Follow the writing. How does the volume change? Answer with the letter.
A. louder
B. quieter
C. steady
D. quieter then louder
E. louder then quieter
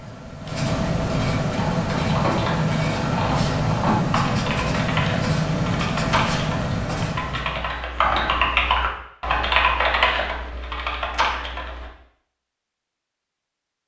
C.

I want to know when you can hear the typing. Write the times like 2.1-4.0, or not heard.
1.5-11.9.